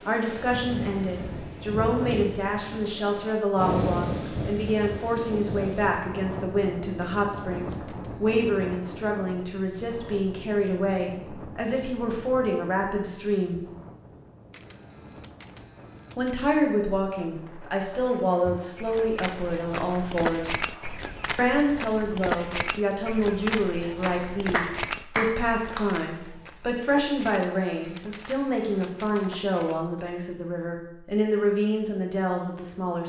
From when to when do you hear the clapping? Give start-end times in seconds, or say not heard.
24.1-25.9.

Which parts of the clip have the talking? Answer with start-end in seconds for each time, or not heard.
0.1-13.7, 16.1-20.6, 21.4-33.0.